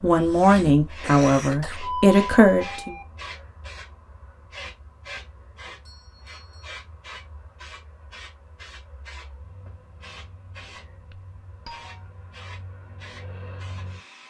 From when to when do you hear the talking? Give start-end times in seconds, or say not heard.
0.0-3.0.